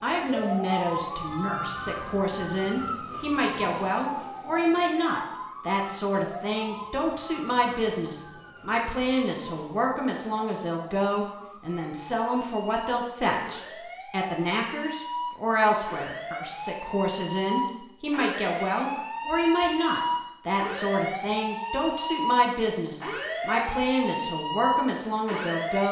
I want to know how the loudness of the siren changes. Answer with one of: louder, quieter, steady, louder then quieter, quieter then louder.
quieter then louder.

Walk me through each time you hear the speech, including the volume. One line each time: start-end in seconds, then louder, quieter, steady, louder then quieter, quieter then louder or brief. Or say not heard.
0.0-25.8 steady.